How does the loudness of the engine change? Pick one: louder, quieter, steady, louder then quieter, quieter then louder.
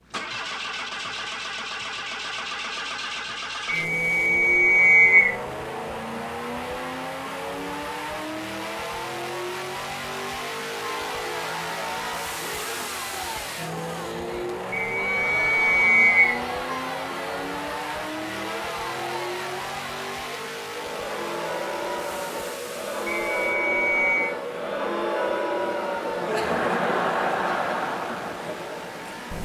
quieter.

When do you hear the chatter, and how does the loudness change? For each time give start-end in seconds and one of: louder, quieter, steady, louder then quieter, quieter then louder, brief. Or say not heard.
10.8-29.3 louder.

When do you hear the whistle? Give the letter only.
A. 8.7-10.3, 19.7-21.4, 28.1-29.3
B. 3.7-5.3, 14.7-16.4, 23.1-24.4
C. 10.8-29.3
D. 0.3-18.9
B.